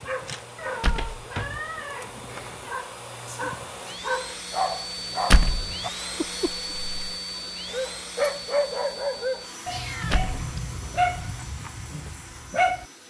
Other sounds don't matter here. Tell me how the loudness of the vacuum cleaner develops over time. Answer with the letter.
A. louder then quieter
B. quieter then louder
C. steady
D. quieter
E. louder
A.